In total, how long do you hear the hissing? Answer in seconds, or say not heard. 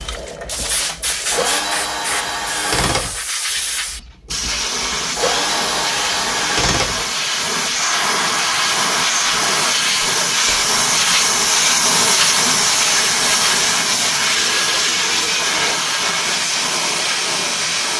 18 s.